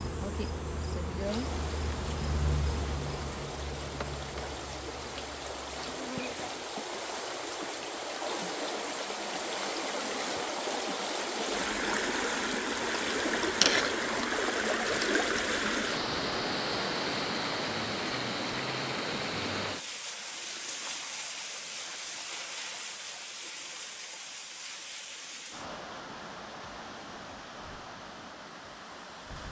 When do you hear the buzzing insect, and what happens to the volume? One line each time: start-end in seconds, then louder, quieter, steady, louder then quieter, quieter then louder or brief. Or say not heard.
0.0-6.7 quieter.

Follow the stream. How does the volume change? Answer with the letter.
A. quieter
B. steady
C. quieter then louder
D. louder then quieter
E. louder
D.